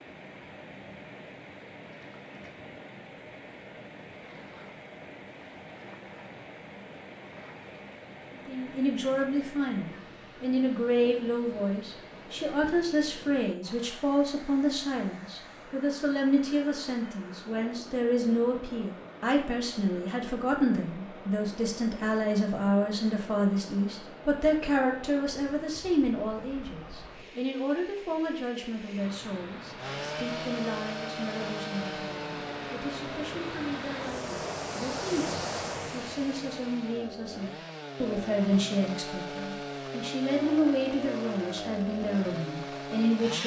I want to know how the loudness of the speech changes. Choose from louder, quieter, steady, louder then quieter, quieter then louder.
quieter then louder.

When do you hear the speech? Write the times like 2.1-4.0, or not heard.
8.3-43.4.